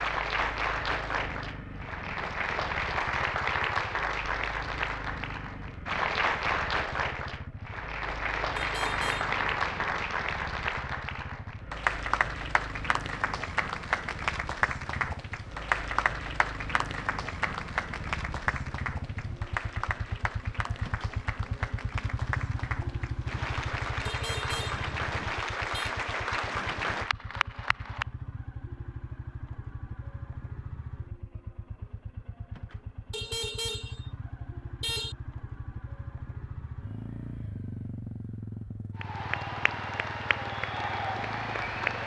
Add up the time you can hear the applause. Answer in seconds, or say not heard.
31 s.